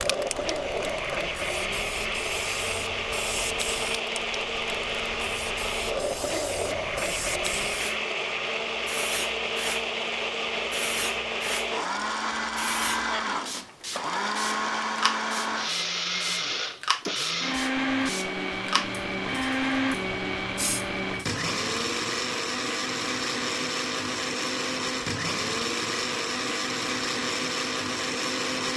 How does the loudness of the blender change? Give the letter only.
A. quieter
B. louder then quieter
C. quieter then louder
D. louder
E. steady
E.